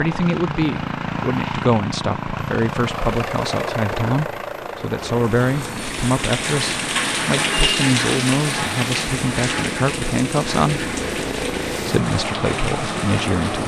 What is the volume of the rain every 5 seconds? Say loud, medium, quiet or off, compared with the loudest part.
off, loud, medium.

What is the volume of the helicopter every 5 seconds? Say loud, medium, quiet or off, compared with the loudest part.
loud, medium, loud.